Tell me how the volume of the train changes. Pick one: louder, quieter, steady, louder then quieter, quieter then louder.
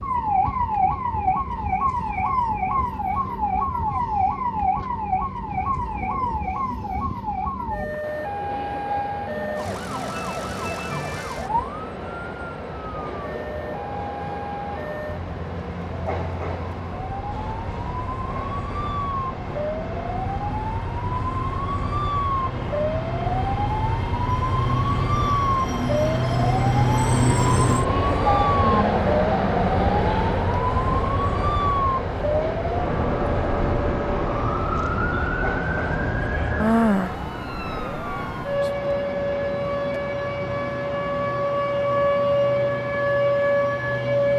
louder then quieter.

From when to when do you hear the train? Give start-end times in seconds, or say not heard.
0.0-44.3.